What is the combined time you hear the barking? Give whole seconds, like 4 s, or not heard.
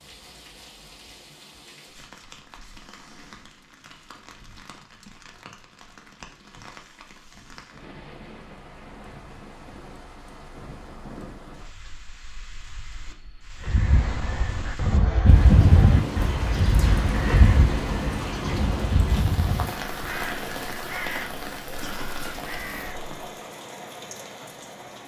not heard.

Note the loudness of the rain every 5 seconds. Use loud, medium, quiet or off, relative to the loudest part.
quiet, quiet, quiet, loud, medium.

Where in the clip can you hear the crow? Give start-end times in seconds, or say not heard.
13.7-23.2.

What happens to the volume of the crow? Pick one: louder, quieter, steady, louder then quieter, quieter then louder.
quieter.